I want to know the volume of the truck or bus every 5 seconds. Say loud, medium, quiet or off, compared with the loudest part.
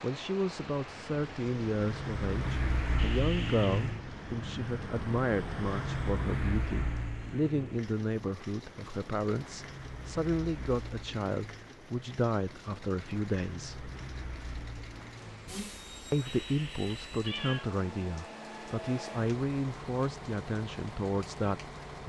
loud, loud, medium, medium, medium.